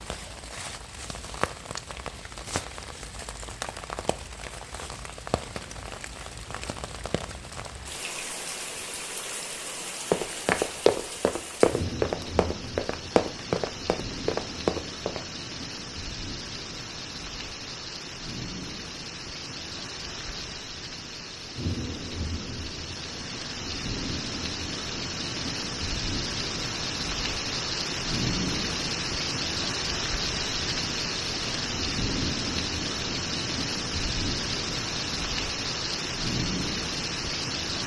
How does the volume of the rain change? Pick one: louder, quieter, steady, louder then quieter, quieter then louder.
louder.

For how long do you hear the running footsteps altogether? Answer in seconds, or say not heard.
5 s.